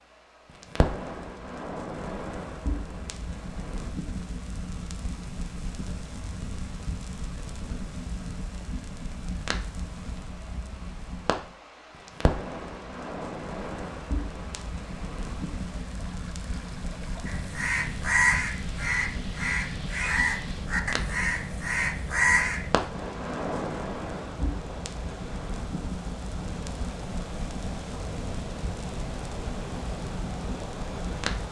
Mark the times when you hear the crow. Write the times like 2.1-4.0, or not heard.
17.2-22.9.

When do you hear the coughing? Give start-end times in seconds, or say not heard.
not heard.